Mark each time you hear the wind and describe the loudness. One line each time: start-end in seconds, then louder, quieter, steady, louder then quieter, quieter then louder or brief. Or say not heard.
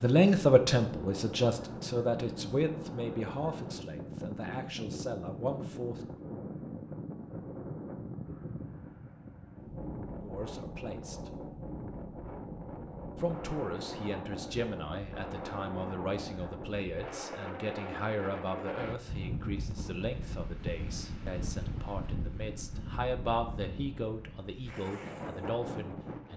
0.1-26.3 steady.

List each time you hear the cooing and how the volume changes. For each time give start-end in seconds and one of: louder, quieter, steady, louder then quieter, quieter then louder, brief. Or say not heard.
not heard.